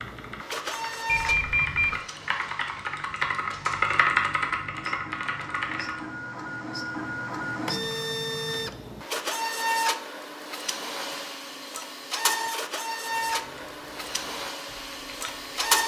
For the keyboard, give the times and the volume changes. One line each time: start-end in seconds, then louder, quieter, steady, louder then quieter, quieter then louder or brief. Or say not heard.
0.0-6.0 louder then quieter
13.1-15.6 brief.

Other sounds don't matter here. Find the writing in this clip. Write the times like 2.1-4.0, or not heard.
not heard.